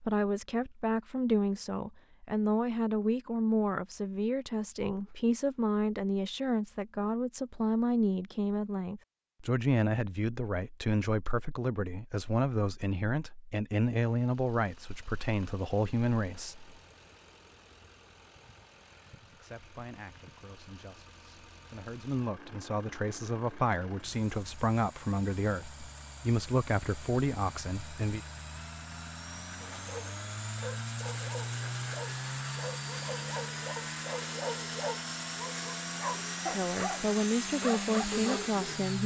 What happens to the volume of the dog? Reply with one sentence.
The loudness of the dog goes up.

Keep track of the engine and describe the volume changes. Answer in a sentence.
The volume of the engine goes up.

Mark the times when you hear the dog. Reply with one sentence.
You can hear the dog from 29.6 to 38.8 s.